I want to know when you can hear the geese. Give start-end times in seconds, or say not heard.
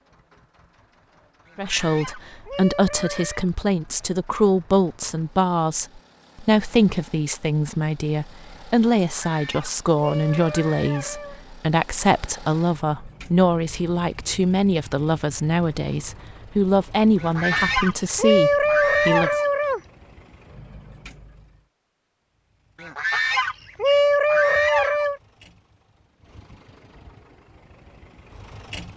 1.4-3.5, 9.1-11.4, 17.2-19.8, 22.8-25.2.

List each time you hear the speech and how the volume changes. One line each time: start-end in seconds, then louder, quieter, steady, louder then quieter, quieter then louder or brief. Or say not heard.
1.6-19.4 steady.